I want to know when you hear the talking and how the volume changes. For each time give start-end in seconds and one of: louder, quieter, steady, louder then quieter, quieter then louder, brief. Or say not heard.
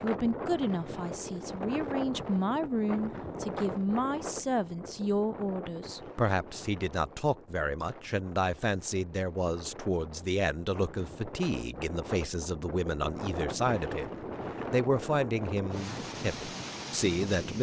0.0-17.5 steady.